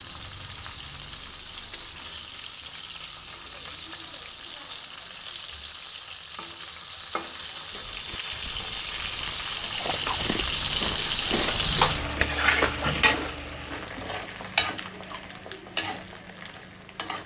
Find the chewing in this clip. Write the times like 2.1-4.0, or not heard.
7.7-15.4.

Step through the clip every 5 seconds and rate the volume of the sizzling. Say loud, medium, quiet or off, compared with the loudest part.
quiet, medium, loud, medium.